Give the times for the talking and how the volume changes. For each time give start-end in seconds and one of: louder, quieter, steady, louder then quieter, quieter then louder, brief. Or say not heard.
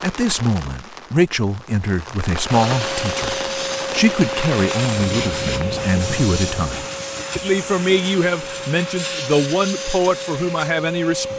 0.0-11.3 steady.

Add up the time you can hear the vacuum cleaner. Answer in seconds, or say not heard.
9 s.